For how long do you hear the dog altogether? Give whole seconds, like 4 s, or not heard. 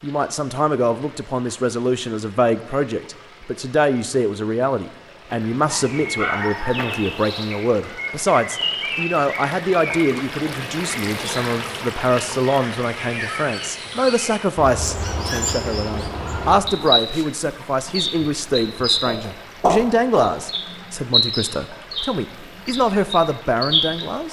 2 s.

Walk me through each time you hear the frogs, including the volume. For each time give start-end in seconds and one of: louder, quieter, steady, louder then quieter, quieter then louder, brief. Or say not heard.
not heard.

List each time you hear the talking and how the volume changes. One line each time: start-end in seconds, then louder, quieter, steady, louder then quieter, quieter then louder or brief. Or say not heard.
0.0-24.2 steady.